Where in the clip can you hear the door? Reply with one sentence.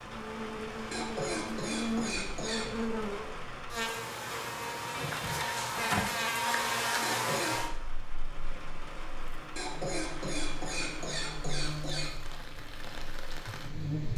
You can hear the door from 5.0 to 6.2 s.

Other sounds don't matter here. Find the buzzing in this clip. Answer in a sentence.
You can hear the buzzing from 0.0 to 14.1 s.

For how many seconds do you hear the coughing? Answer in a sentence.
You can hear the coughing for 5 seconds altogether.